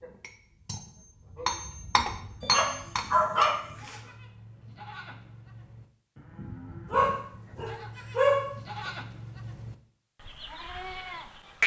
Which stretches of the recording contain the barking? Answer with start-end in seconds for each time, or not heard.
2.4-4.0, 6.9-8.9.